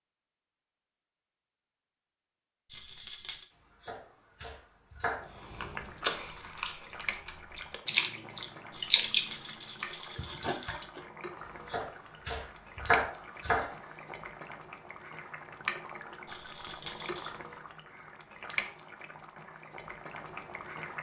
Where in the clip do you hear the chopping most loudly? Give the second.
13 s.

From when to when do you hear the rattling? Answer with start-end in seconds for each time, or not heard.
2.6-3.5, 8.7-10.9, 16.2-17.4.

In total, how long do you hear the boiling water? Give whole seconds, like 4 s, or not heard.
16 s.